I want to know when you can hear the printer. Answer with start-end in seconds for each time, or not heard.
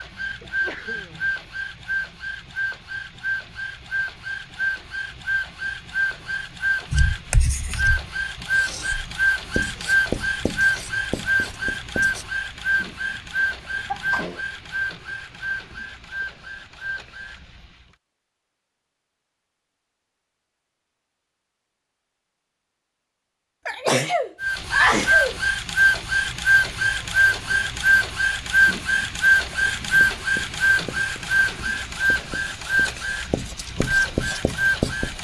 0.0-17.9, 24.4-35.1.